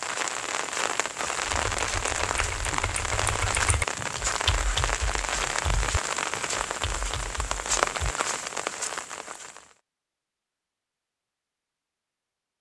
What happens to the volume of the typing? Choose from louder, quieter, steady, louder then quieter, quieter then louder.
louder then quieter.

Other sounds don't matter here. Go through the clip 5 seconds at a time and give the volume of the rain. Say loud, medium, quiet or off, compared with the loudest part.
loud, loud, off.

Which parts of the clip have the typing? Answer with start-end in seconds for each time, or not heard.
1.4-8.2.